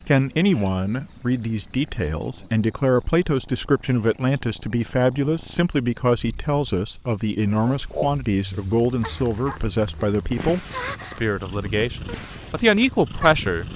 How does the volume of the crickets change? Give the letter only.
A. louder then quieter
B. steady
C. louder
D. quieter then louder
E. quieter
E.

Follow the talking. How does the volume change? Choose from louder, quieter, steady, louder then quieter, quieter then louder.
steady.